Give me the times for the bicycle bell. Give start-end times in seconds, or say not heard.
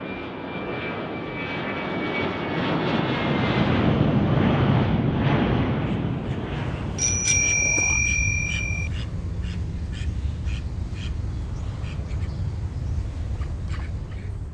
7.0-8.9.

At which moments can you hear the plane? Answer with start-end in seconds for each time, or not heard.
0.0-14.4.